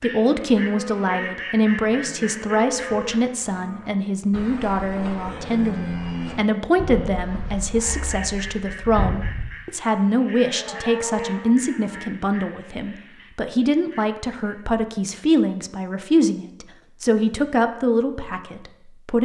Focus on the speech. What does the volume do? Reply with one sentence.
The loudness of the speech stays about the same.